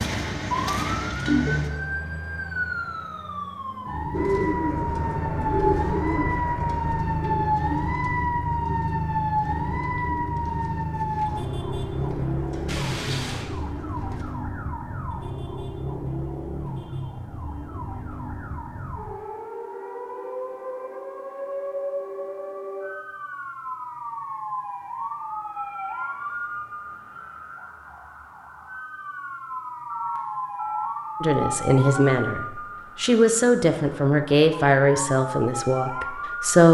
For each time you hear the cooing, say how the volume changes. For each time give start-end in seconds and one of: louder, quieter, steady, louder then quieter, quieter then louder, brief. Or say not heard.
4.1-14.2 quieter.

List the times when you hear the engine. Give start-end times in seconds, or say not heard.
0.0-1.7.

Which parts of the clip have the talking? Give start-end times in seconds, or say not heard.
31.2-36.6.